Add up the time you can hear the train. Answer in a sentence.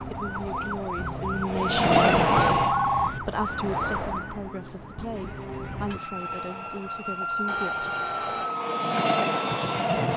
You can hear the train for 6 seconds altogether.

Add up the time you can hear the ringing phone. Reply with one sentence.
You can hear the ringing phone for 2 seconds altogether.